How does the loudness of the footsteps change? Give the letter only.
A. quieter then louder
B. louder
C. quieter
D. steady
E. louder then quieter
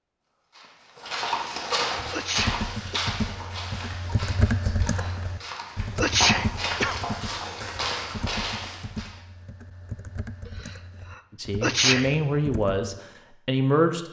A.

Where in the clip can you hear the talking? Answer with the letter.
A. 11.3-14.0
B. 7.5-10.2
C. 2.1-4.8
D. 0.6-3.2
A.